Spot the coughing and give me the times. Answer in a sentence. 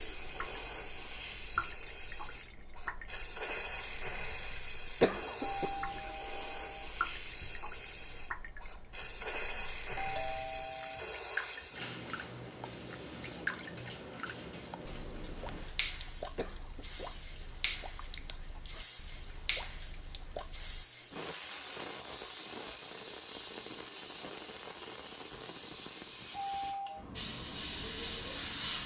The coughing can be heard from 5.0 to 5.8 s and from 16.4 to 17.1 s.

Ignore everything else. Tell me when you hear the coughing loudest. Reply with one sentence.
The loudest moment of the coughing is at 5 seconds.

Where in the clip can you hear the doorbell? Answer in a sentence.
The doorbell can be heard from 5.5 to 6.9 s, from 9.9 to 11.0 s and from 26.4 to 27.1 s.